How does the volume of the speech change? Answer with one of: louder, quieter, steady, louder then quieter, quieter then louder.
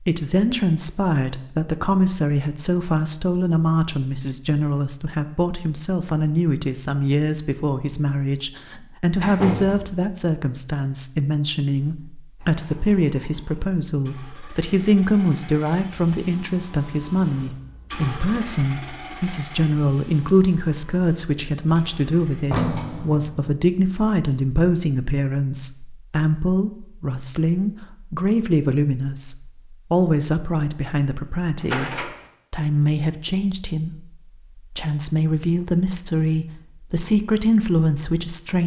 steady.